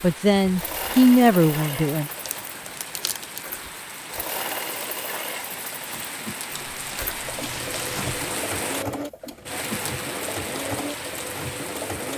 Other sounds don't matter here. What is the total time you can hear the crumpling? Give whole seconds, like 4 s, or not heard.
3 s.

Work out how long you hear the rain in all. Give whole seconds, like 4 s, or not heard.
12 s.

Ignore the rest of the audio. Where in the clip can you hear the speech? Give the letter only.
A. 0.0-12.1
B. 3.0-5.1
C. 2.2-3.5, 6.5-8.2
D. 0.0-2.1
D.